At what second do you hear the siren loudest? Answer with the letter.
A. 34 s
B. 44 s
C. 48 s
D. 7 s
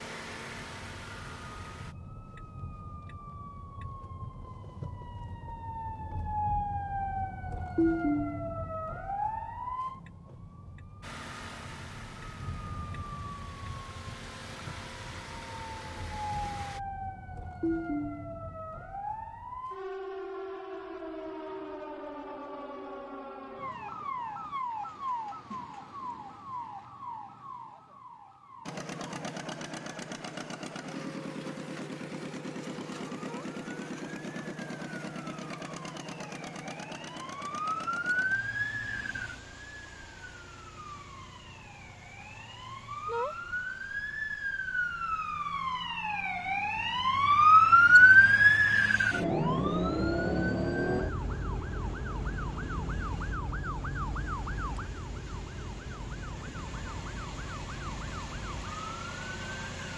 C.